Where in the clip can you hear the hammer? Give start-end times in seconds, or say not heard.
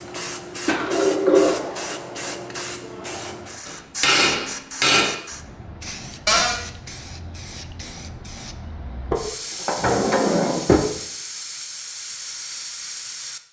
3.6-5.2.